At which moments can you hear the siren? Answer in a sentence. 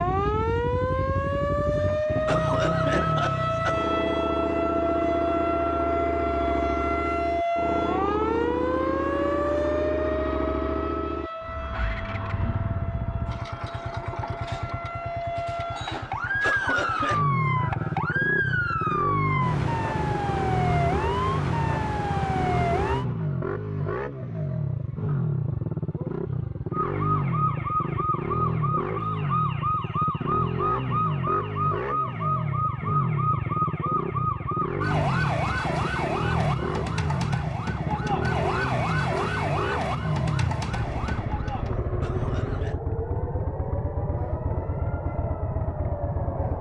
You can hear the siren from 0.0 to 23.1 s and from 26.7 to 46.5 s.